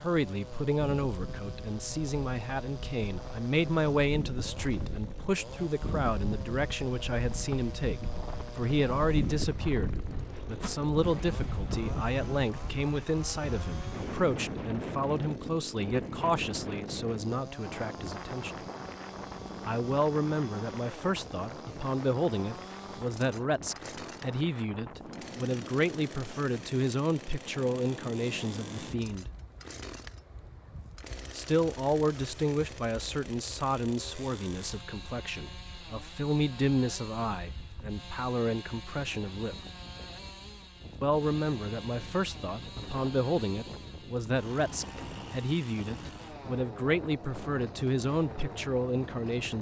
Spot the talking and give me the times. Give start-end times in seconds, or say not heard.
0.0-18.6, 19.6-29.3, 31.3-39.5, 41.0-49.5.